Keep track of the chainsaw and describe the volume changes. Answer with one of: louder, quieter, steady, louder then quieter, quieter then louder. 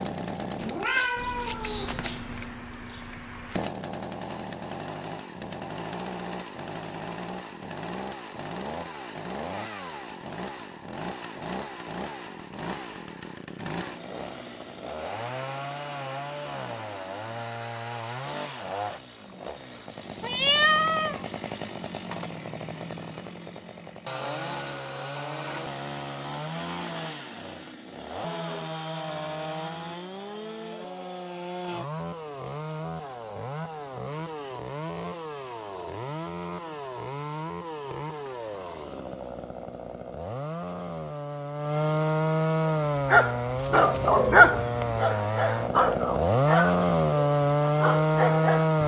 louder.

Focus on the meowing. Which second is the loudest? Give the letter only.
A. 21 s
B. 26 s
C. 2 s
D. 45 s
A.